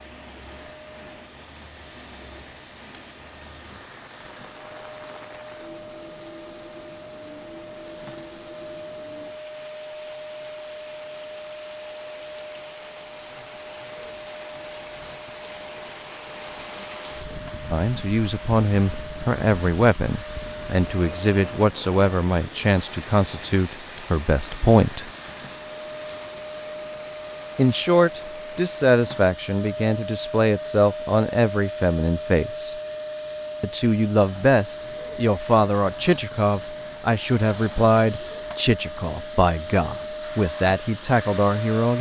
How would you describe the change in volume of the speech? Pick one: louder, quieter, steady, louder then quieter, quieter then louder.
steady.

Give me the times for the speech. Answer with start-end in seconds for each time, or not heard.
17.7-25.1, 27.6-32.8, 33.6-41.9.